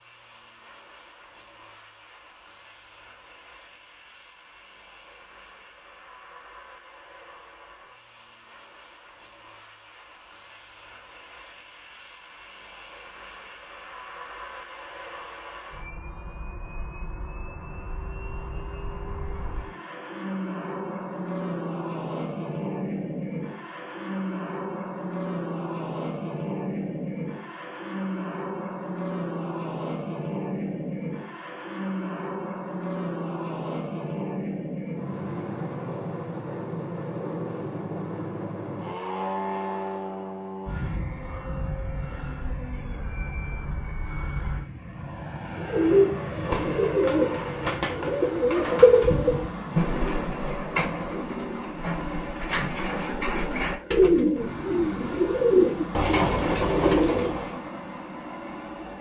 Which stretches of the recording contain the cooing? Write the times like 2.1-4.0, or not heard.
45.5-57.5.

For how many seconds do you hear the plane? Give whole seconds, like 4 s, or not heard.
59 s.